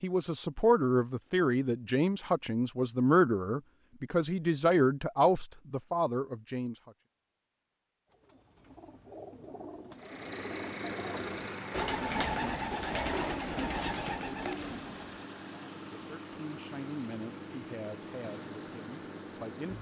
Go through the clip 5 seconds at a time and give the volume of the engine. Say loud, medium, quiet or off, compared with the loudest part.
off, off, loud, loud.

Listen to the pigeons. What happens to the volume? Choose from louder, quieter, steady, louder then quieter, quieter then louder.
louder.